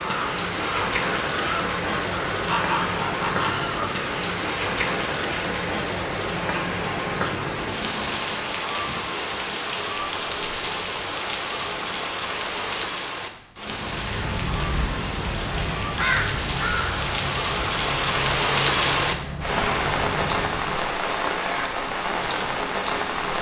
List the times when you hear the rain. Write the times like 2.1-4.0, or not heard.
0.0-23.3.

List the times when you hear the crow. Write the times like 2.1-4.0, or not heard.
0.0-4.0, 13.7-20.7.